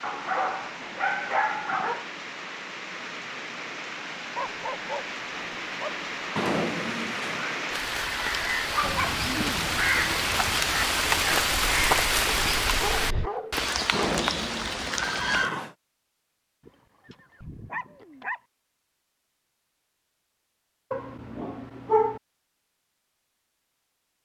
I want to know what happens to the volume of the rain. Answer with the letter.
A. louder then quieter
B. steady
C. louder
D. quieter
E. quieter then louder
C.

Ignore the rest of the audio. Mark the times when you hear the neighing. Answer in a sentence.
You can hear the neighing from 6.3 to 7.6 s and from 13.9 to 15.8 s.